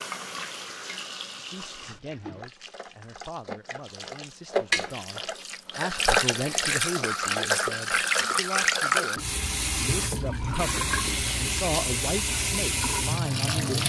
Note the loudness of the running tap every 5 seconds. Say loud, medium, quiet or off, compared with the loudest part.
medium, loud, loud.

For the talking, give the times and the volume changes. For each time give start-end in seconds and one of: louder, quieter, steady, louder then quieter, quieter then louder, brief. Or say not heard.
1.5-13.8 louder.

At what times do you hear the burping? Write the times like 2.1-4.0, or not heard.
not heard.